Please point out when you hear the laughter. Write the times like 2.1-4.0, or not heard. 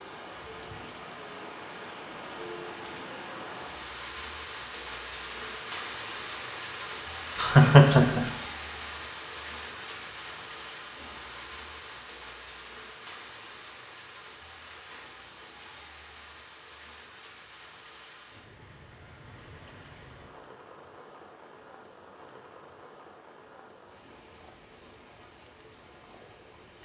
7.3-8.2.